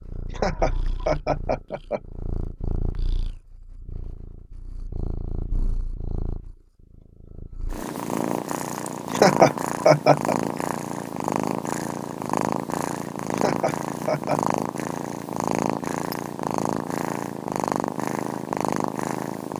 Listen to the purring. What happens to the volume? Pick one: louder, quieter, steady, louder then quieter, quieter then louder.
louder.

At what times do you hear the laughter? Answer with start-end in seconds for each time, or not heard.
0.3-2.0, 9.1-10.3, 13.3-14.4.